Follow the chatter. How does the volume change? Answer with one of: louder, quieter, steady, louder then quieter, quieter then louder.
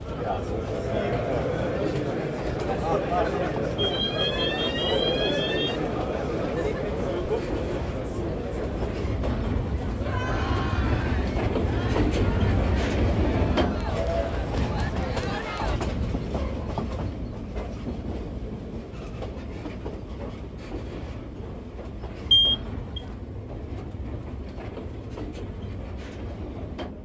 quieter.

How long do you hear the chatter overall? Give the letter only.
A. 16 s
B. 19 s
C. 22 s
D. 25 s
A.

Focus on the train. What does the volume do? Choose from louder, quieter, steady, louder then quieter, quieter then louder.
louder then quieter.